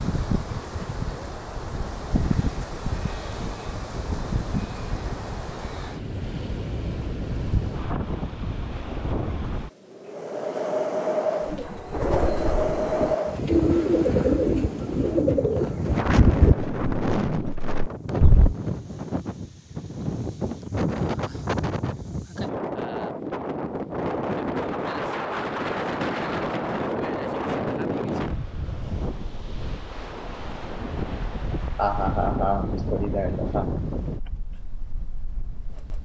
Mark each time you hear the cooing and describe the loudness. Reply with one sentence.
You can hear the cooing from 11.4 to 18.6 s, getting louder then quieter.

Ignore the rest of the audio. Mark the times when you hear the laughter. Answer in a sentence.
You can hear the laughter from 31.8 to 33.6 s.